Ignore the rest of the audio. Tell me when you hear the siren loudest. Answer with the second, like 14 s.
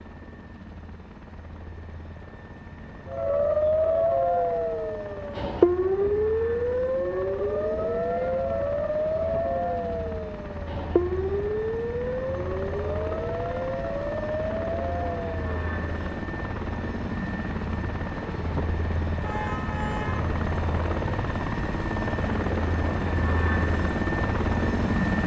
6 s.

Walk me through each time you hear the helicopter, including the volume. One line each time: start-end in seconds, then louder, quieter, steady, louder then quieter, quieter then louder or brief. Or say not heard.
0.0-25.2 louder.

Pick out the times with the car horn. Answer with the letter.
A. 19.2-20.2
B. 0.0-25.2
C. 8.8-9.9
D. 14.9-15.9
A.